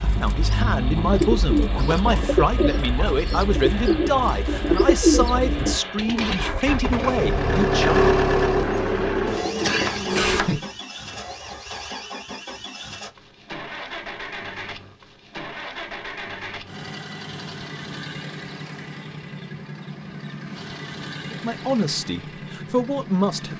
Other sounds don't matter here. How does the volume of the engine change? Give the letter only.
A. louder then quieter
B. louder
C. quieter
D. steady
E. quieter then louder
A.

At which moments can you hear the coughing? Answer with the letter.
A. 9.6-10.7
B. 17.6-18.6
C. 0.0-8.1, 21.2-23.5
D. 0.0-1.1
A.